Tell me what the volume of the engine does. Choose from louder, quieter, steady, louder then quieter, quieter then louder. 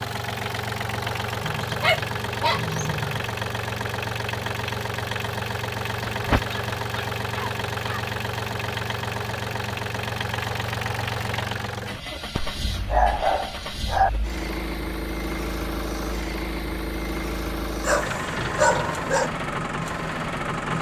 steady.